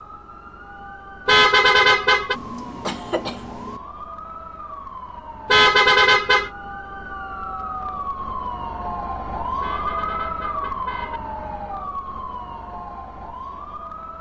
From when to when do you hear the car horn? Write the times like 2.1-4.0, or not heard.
1.2-2.4, 5.5-6.5, 9.6-11.2.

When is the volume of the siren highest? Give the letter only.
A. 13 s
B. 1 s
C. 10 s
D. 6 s
C.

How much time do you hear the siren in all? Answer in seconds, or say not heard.
14 s.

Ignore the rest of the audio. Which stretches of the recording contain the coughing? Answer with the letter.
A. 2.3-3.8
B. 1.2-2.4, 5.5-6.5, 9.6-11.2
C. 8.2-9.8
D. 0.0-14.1
A.